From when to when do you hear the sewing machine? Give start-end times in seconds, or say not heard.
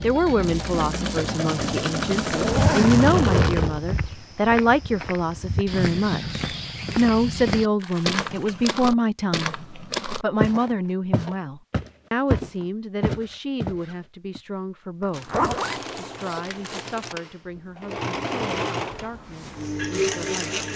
0.0-3.7, 15.1-20.7.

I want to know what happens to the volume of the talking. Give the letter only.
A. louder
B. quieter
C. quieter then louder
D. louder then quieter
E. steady
B.